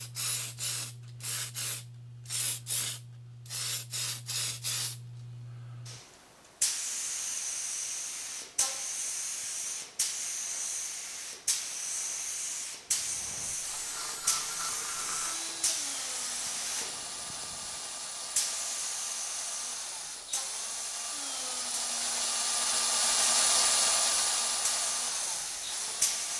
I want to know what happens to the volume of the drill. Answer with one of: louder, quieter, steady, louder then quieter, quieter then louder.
louder.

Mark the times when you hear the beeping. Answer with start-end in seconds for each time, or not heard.
not heard.